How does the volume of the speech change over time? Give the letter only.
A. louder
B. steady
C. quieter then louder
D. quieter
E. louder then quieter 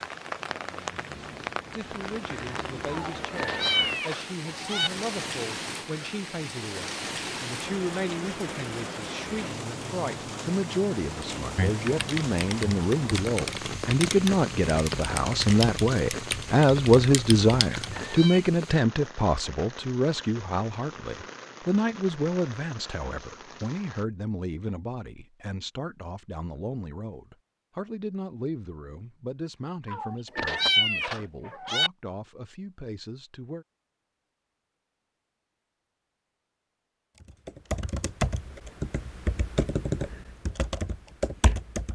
E.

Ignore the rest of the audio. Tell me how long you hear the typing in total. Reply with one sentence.
The typing can be heard for 11 seconds in total.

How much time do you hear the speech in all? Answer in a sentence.
You can hear the speech for 32 seconds altogether.